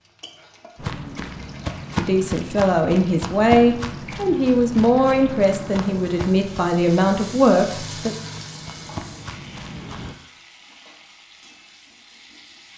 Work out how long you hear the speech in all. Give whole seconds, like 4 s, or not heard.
6 s.